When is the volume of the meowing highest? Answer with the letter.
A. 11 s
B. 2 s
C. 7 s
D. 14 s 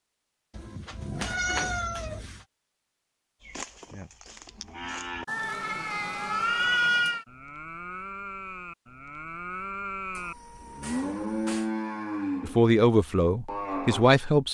C.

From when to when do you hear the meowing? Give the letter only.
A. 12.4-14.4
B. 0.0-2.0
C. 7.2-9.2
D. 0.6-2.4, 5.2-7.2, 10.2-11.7
D.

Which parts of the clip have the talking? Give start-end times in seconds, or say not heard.
12.4-14.4.